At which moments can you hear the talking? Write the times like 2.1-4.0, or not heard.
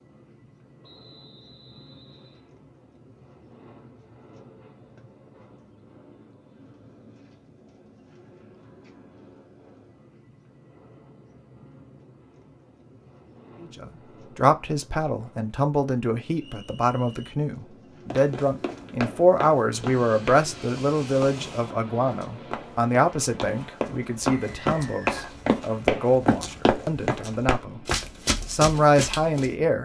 13.6-27.9, 28.4-29.8.